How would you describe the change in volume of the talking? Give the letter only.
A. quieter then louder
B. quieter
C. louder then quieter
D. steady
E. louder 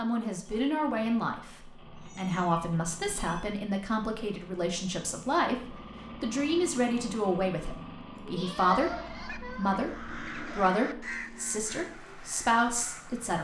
D.